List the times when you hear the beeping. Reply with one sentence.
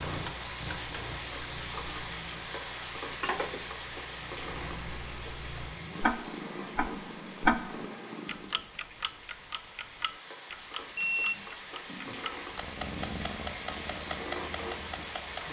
The beeping can be heard from 10.9 to 12.2 s.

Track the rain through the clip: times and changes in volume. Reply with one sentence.
The rain can be heard from 0.0 to 15.4 s, getting quieter then louder.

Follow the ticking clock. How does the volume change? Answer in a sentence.
The volume of the ticking clock goes up, then down.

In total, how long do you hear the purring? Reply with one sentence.
You can hear the purring for 12 seconds altogether.